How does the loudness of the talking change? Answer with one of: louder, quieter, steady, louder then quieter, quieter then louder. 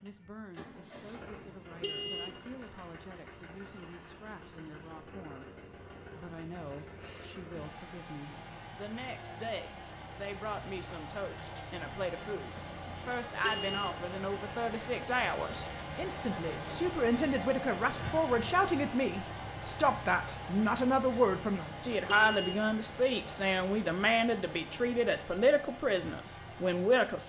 louder.